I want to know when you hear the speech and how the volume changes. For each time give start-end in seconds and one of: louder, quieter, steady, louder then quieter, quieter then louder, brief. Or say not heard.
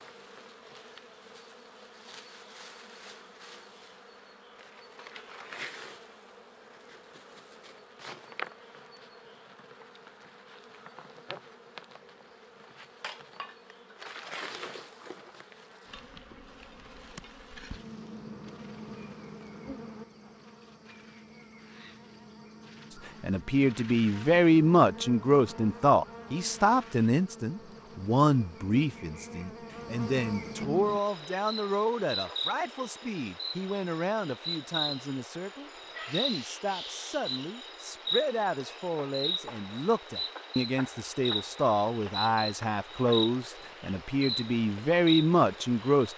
23.2-46.1 quieter then louder.